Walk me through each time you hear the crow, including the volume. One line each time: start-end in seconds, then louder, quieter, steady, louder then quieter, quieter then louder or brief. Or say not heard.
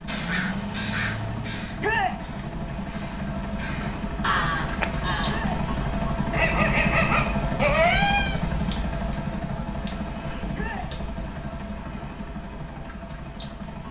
0.1-5.6 quieter then louder.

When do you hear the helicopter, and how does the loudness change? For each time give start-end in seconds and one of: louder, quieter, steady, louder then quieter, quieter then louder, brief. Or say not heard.
0.0-13.8 louder then quieter.